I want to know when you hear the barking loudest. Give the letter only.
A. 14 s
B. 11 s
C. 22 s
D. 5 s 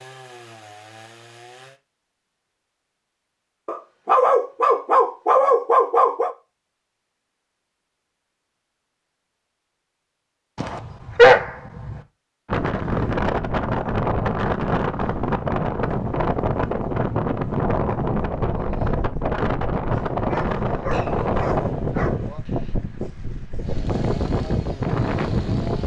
B.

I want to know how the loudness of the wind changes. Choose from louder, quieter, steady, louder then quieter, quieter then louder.
steady.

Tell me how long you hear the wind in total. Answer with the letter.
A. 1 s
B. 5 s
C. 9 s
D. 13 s
D.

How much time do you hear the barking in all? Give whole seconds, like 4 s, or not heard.
6 s.